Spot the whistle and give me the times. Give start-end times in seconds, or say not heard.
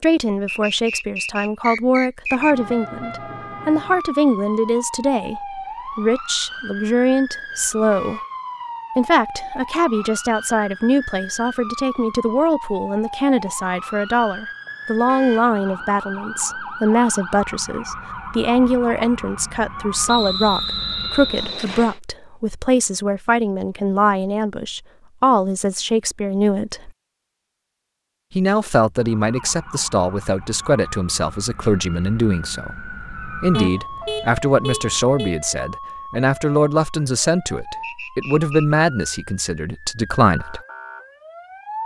0.5-2.5, 20.1-22.0, 37.8-38.8.